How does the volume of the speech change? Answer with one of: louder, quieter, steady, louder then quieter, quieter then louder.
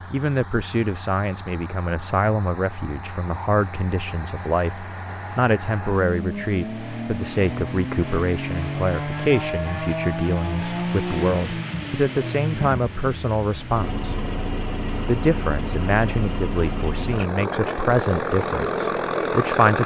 steady.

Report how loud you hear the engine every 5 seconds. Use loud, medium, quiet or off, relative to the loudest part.
quiet, loud, loud, loud.